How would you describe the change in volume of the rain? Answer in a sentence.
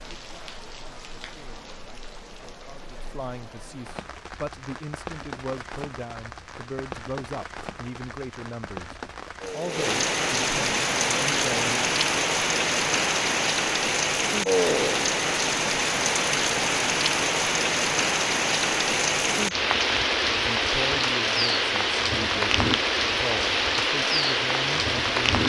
The loudness of the rain goes up.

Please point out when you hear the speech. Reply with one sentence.
The speech can be heard from 0.0 to 11.9 s and from 20.4 to 25.4 s.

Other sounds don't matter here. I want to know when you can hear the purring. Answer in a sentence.
The purring can't be heard in this clip.